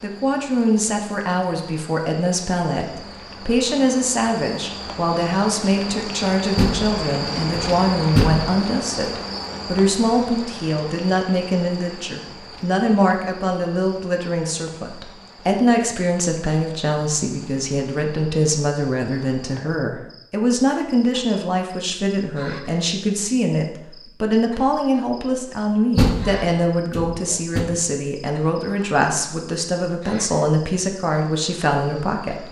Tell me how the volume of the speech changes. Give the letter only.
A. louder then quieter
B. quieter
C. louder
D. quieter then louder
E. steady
E.